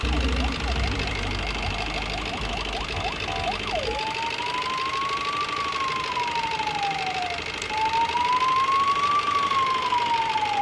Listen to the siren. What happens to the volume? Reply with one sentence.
The loudness of the siren goes up.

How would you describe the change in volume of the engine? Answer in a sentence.
The volume of the engine stays about the same.